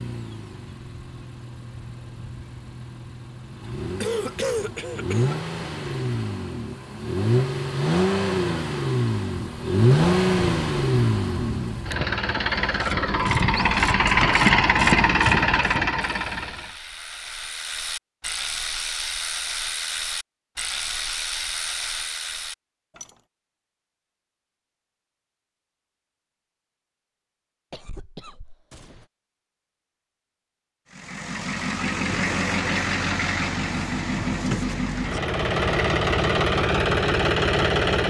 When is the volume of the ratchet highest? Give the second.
14 s.